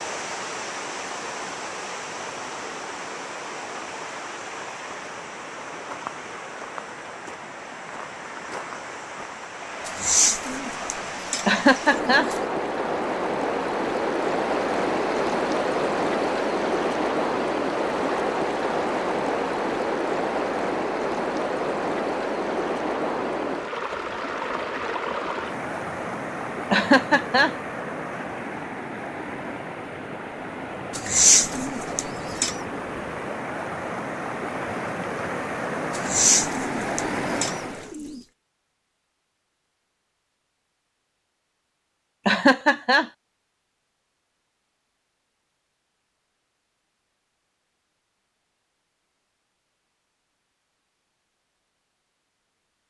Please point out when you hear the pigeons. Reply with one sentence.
You can hear the pigeons from 9.8 to 12.4 s, from 30.9 to 32.5 s and from 35.9 to 38.2 s.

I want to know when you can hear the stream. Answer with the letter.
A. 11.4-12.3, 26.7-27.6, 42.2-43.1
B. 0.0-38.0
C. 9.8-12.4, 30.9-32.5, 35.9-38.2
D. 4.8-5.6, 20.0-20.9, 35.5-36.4
B.